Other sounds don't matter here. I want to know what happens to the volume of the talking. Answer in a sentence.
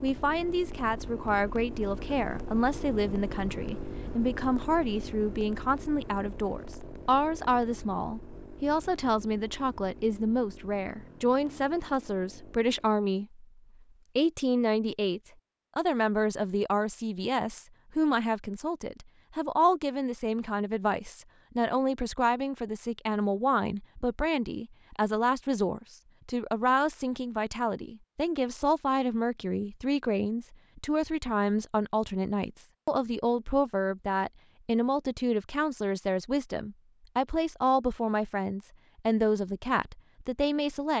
The volume of the talking stays about the same.